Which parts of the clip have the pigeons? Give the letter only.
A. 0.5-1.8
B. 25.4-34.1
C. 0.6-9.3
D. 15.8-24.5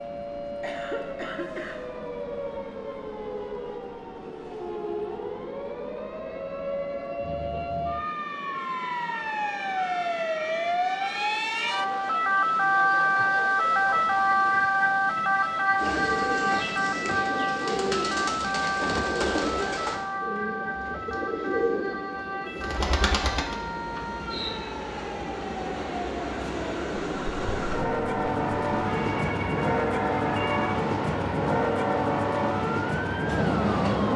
D.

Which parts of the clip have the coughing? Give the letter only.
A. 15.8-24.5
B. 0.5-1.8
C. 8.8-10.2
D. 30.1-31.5
B.